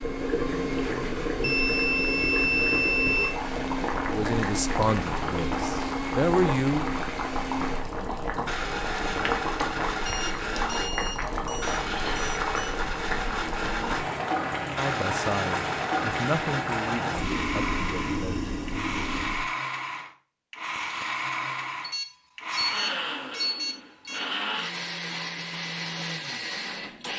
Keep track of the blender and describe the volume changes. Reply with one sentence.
The volume of the blender stays about the same.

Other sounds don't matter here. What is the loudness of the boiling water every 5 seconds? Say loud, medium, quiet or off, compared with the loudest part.
loud, loud, loud, loud, off, off.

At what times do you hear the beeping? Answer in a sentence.
The beeping can be heard from 1.4 to 3.4 s, from 10.1 to 12.8 s and from 21.8 to 24.3 s.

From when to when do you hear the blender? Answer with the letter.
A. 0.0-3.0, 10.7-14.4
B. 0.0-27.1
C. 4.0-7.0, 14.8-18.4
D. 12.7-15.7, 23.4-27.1
B.